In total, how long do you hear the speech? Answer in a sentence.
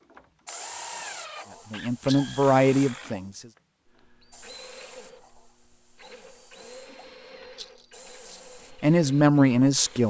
You can hear the speech for 3 seconds altogether.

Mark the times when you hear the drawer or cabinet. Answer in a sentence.
The drawer or cabinet can't be heard in this clip.